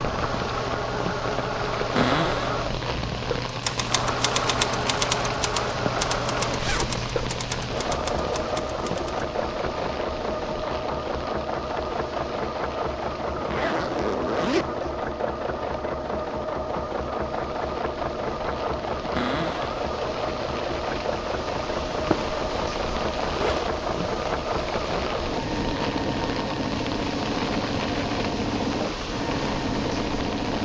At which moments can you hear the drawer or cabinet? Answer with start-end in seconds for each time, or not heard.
1.9-2.6, 19.1-19.8.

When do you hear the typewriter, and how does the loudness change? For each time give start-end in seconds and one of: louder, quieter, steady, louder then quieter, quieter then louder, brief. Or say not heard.
3.5-9.2 quieter.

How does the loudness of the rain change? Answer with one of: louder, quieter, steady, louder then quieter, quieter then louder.
quieter then louder.